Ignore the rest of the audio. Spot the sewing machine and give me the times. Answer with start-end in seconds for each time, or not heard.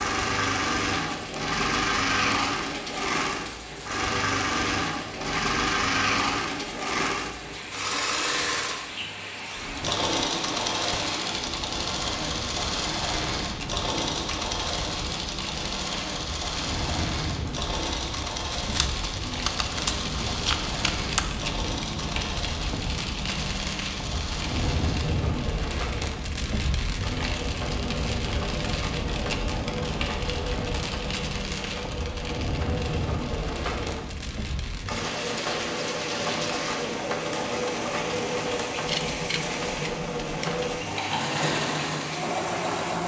0.0-43.0.